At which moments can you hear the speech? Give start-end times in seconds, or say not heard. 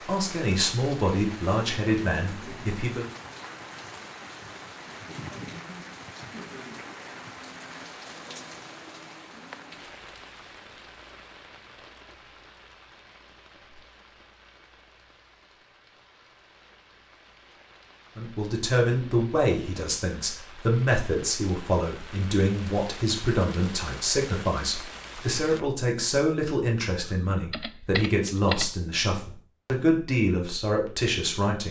0.1-3.0, 18.1-31.6.